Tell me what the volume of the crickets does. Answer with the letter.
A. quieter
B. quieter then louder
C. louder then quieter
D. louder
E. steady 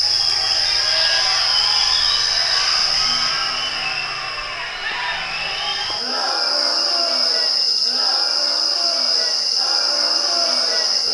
B.